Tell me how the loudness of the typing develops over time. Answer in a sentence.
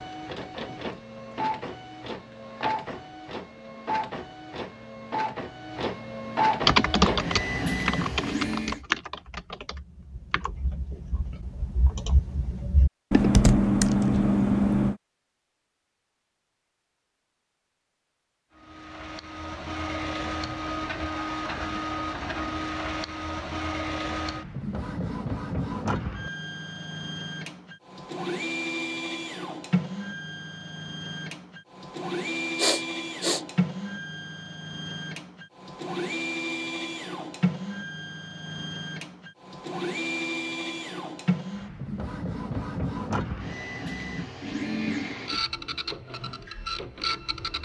The loudness of the typing goes down, then up.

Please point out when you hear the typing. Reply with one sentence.
The typing can be heard from 6.6 to 14.9 s.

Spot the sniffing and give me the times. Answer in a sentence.
The sniffing can be heard from 32.5 to 33.4 s.